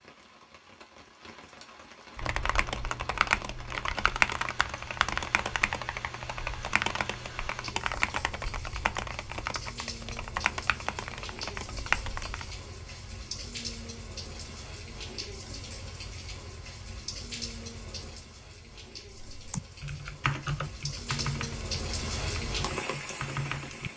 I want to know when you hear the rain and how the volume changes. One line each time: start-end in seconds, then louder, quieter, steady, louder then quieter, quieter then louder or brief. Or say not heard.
0.0-23.9 louder.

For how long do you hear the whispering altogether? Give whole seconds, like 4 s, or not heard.
not heard.